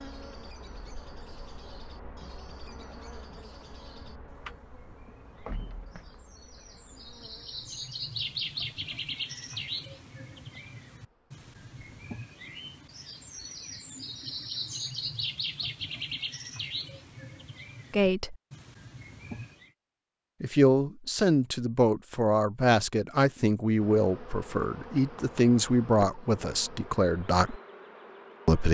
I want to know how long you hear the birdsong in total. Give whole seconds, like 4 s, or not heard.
20 s.